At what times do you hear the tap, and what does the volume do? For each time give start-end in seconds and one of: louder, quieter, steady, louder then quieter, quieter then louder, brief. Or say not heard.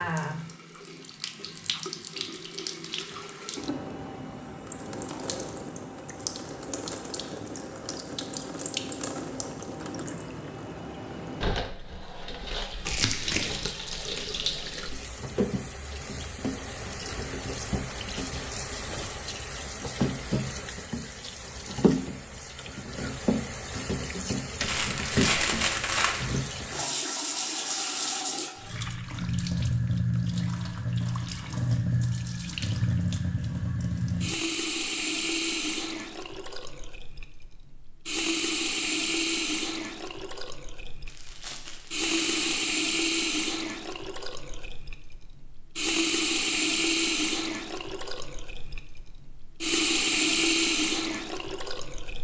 0.0-52.1 louder.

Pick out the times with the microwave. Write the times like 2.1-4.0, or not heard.
not heard.